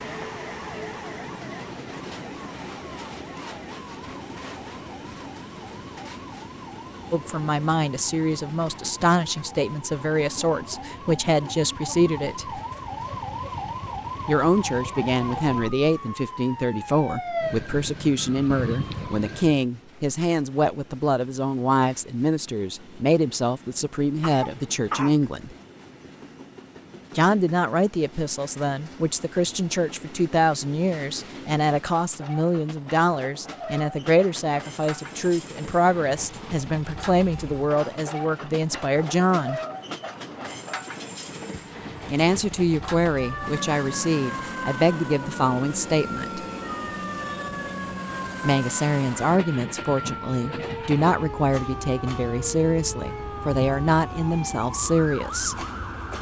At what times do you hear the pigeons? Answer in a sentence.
You can't hear the pigeons here.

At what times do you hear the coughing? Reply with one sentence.
The coughing can be heard from 24.2 to 25.1 s.